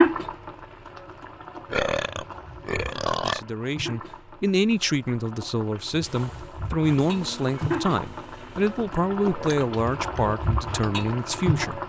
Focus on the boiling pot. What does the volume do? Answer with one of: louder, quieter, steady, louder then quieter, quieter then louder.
louder.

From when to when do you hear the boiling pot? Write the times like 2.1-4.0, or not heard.
0.0-11.8.